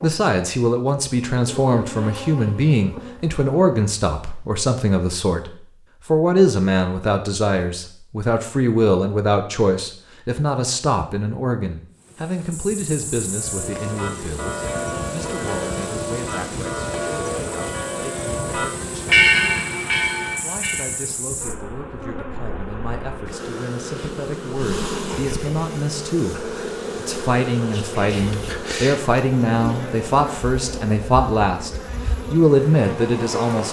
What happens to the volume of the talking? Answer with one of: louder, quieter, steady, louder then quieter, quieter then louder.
quieter then louder.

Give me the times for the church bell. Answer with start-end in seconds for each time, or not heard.
13.3-21.1.